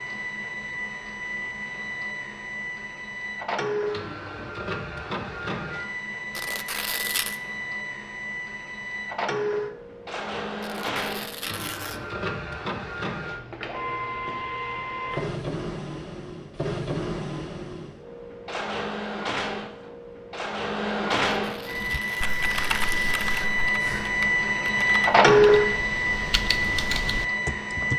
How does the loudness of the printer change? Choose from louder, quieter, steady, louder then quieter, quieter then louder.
louder.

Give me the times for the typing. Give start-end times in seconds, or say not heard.
21.7-27.9.